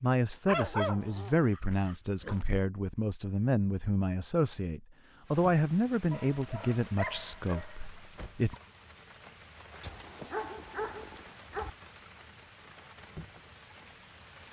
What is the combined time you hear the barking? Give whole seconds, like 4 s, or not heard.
6 s.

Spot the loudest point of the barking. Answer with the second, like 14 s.
1 s.